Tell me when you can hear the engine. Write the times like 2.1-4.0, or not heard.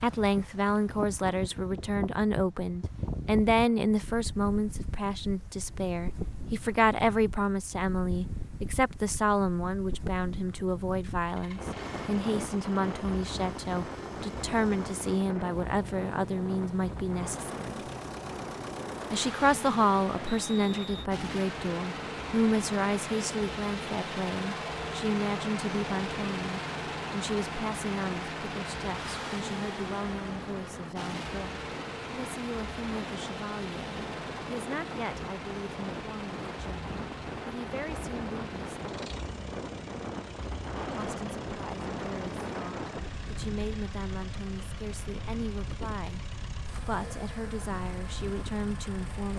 11.2-49.3.